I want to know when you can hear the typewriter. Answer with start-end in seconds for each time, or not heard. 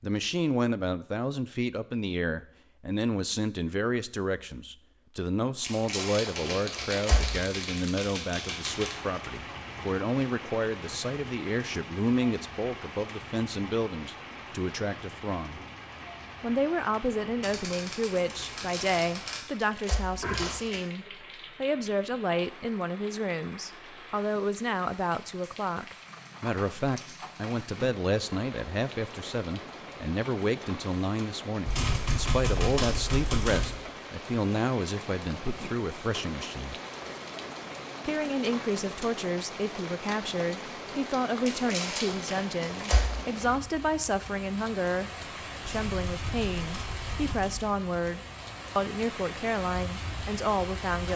6.3-8.9, 17.4-19.4, 31.6-33.6, 45.6-47.6.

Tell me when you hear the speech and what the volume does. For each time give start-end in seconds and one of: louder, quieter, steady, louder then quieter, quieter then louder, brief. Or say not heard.
0.0-15.6 steady
16.4-36.8 steady
38.0-51.1 steady.